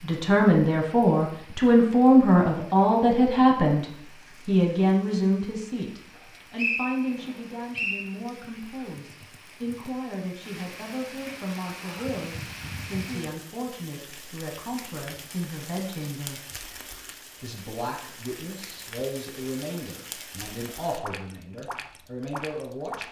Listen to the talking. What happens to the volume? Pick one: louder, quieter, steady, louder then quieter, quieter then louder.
quieter.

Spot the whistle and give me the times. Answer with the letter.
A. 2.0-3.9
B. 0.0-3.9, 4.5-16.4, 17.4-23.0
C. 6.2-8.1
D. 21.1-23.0
C.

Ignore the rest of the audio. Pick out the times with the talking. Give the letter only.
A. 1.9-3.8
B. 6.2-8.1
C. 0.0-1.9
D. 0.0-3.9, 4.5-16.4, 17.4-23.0
D.